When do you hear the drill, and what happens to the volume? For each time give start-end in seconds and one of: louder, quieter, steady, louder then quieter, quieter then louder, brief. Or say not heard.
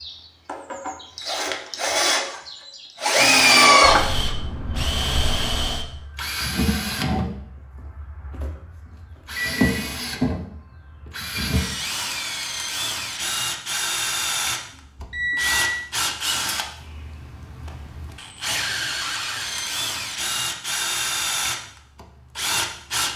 0.0-23.1 quieter.